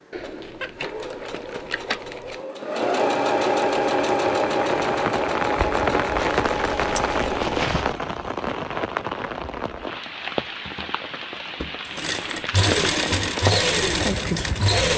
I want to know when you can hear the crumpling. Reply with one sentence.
The crumpling can be heard from 0.1 to 2.4 s, from 6.2 to 8.0 s and from 10.3 to 12.8 s.